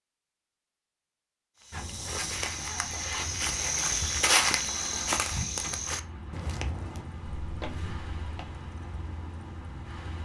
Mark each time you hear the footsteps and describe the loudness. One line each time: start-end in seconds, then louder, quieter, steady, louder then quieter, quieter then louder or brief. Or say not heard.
1.6-8.5 louder then quieter.